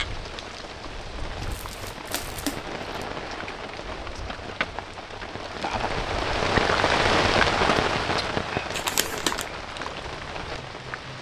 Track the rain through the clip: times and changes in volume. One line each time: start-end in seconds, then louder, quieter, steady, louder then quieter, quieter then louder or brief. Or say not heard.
0.0-11.1 louder then quieter.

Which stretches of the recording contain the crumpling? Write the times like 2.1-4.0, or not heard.
1.4-3.0, 8.7-9.4.